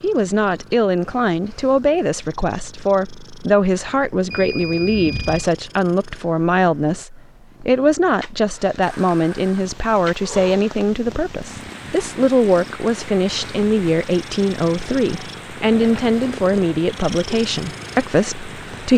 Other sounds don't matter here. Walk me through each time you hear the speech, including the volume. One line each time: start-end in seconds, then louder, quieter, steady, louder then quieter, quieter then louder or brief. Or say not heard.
0.0-18.9 steady.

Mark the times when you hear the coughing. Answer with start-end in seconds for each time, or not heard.
not heard.